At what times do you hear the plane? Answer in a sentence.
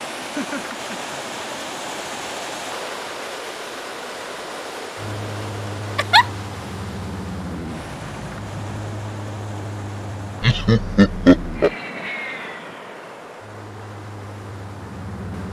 The plane can be heard from 5.0 to 15.4 s.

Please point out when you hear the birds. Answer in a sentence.
The birds can't be heard in this clip.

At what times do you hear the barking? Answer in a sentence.
The barking can't be heard in this clip.